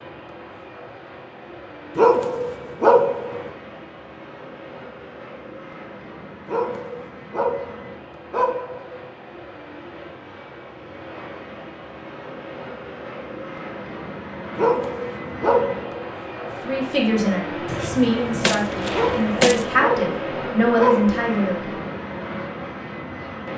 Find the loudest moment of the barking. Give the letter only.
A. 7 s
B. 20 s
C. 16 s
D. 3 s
D.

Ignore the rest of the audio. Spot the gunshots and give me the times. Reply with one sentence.
You can hear the gunshots from 17.6 to 19.6 s.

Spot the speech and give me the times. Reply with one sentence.
You can hear the speech from 16.6 to 21.7 s.